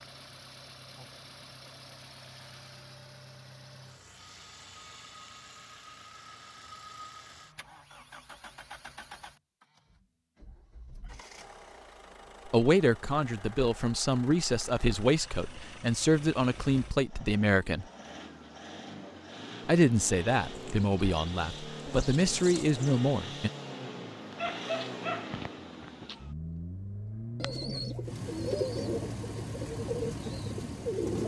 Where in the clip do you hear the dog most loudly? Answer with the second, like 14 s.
25 s.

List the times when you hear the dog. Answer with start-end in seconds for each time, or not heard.
24.3-26.1.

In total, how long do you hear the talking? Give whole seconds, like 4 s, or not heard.
9 s.